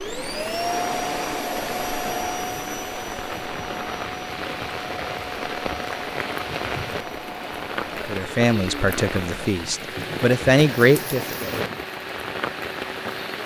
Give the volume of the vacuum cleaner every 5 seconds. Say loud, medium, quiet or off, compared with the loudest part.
loud, medium, medium.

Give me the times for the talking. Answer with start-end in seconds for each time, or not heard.
8.1-11.5.